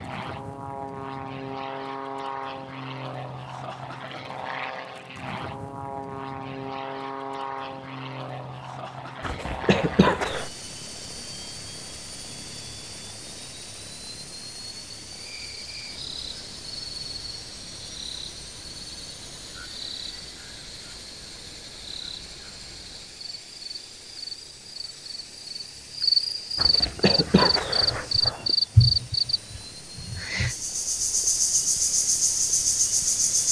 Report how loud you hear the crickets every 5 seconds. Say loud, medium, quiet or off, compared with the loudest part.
off, off, off, quiet, quiet, loud, loud.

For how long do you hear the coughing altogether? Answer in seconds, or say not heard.
3 s.